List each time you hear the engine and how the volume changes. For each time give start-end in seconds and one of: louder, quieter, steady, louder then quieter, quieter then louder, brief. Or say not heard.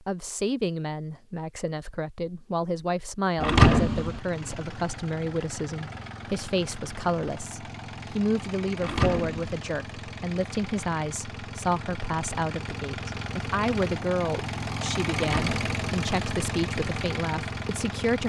4.0-18.2 louder.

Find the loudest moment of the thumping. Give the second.
4 s.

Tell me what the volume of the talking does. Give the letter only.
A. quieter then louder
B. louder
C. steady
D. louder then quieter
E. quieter
C.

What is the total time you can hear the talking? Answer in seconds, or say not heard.
18 s.